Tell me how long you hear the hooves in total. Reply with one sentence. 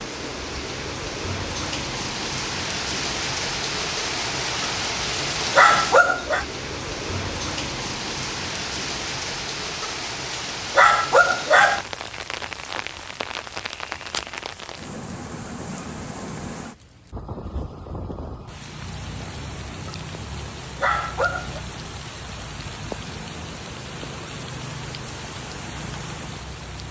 The hooves can't be heard in this clip.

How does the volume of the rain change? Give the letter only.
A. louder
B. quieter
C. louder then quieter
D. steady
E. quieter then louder
B.